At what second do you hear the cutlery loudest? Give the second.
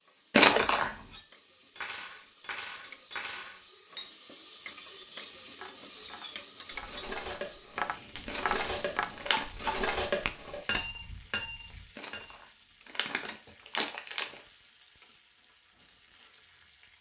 10 s.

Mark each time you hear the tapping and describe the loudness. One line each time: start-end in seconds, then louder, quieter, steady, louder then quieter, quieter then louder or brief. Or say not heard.
5.4-10.9 louder.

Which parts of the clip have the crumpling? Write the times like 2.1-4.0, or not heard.
0.3-0.9, 8.2-9.4, 11.9-14.4.